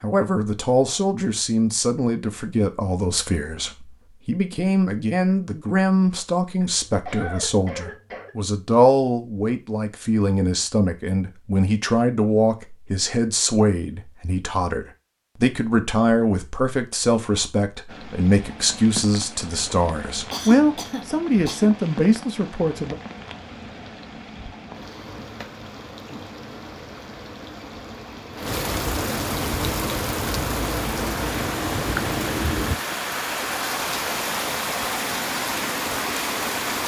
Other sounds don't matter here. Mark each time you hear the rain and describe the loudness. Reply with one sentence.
The rain can be heard from 17.9 to 36.8 s, getting louder.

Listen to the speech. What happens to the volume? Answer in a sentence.
The loudness of the speech stays about the same.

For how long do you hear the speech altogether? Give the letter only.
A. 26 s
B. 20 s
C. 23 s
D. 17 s
C.